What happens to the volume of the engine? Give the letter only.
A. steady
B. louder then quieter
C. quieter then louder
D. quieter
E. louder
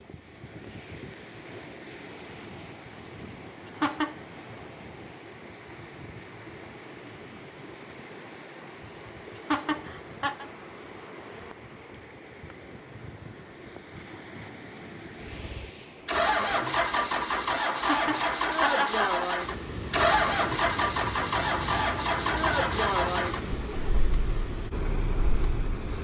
D.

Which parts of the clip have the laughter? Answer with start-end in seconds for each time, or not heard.
3.6-4.2, 9.3-10.4, 17.8-19.2.